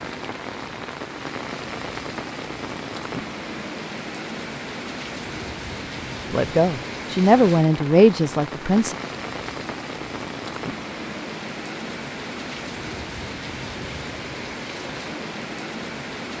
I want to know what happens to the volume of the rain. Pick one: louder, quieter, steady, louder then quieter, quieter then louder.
steady.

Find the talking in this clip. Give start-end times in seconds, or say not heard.
6.3-8.9.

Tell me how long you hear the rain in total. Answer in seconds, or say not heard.
16 s.